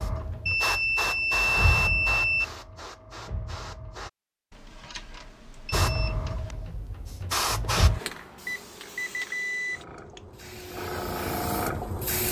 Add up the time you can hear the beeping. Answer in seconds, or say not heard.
6 s.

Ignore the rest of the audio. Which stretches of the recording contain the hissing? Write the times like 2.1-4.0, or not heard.
0.0-4.1, 5.7-12.2.